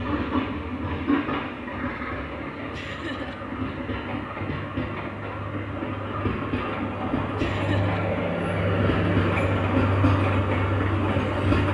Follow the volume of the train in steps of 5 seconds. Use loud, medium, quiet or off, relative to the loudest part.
medium, loud, loud.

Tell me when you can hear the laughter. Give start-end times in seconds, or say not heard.
2.7-3.4, 7.3-8.1.